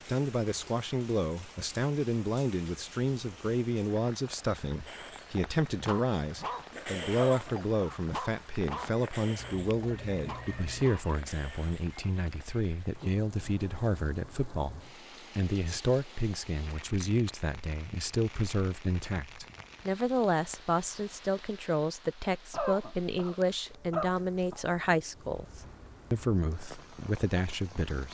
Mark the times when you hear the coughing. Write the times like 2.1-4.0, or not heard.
7.2-8.0, 22.5-24.6.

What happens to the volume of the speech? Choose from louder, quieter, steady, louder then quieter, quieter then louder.
steady.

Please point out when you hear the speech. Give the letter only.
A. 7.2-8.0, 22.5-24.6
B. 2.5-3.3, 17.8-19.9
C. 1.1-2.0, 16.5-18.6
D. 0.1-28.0
D.